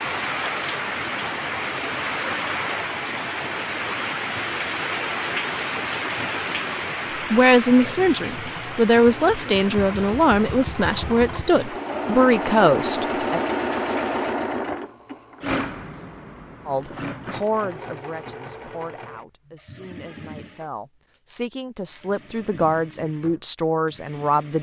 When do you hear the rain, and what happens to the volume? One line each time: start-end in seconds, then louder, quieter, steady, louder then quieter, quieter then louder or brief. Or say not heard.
0.0-14.3 quieter.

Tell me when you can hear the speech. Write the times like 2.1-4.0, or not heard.
7.3-13.4, 16.6-24.5.